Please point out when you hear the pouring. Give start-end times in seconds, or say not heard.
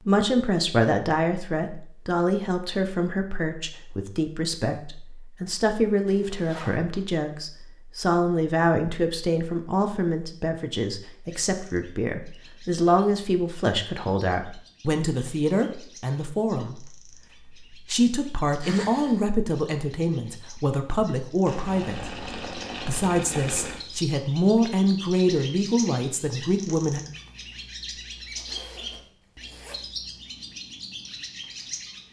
21.4-23.9.